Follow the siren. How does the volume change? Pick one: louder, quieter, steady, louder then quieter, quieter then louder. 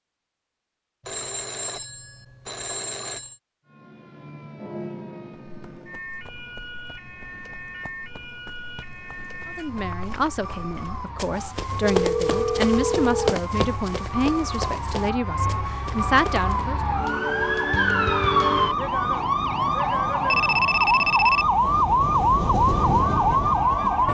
louder.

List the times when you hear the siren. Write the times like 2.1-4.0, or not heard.
3.6-24.0.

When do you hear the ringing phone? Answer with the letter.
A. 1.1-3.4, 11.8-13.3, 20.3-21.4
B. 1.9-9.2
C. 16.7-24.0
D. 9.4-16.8
A.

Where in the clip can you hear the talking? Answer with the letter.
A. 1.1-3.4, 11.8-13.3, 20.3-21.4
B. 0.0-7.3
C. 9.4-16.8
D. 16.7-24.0
C.